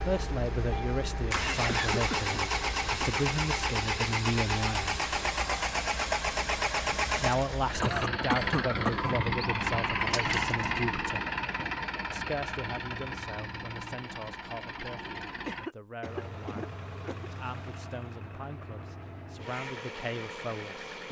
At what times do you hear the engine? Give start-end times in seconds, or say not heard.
0.0-21.0.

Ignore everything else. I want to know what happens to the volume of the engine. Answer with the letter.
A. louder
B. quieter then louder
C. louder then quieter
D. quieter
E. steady
D.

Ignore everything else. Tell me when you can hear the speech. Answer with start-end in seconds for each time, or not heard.
0.1-5.0, 7.2-11.2, 12.1-20.9.